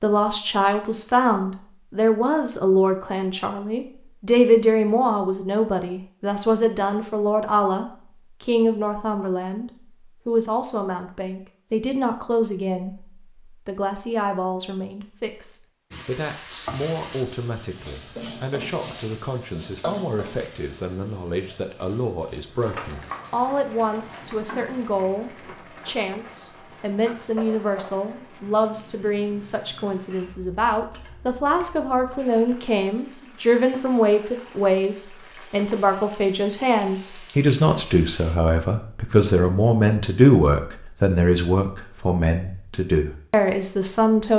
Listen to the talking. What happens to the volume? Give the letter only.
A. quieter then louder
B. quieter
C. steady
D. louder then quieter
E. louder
A.